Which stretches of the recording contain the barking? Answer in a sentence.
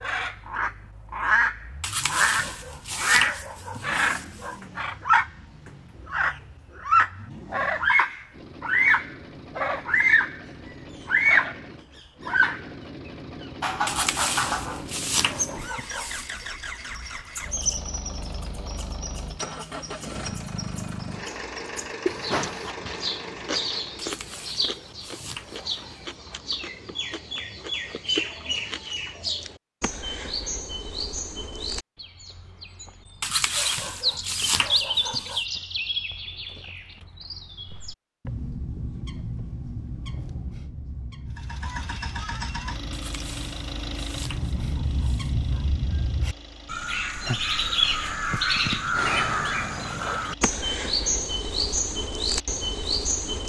The barking can be heard from 1.8 to 4.6 s, from 13.8 to 16.4 s, from 23.9 to 26.1 s, from 33.2 to 35.5 s and from 42.9 to 45.7 s.